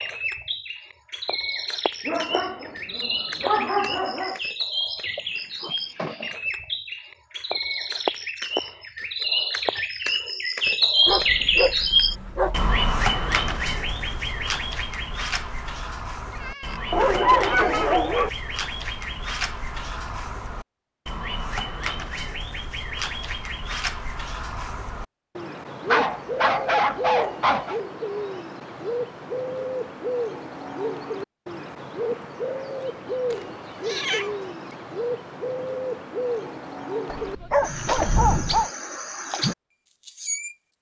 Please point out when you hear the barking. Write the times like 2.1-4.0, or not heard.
2.0-4.4, 11.1-12.8, 16.9-18.3, 25.9-27.8, 37.0-38.7.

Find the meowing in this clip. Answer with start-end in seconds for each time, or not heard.
5.0-6.3, 16.3-17.9, 33.3-34.8.